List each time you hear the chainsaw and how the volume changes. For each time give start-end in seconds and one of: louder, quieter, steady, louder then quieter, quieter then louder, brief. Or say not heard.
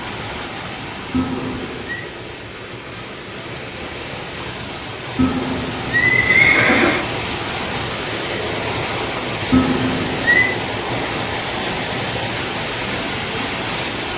not heard.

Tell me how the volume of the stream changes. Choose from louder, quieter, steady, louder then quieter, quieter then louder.
louder.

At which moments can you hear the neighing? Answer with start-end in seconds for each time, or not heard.
1.1-2.0, 5.2-7.0, 9.5-10.5.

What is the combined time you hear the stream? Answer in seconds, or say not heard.
14 s.